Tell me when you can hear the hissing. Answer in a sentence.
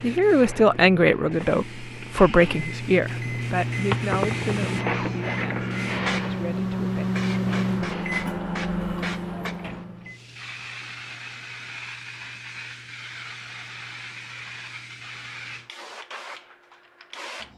The hissing can be heard from 0.0 to 17.5 s.